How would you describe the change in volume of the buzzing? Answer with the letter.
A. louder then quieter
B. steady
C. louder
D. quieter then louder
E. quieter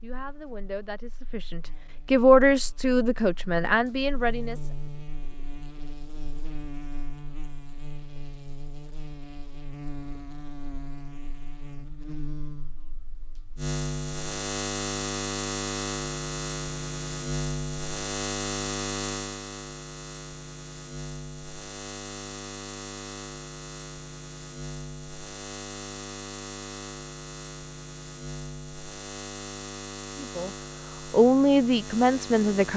A.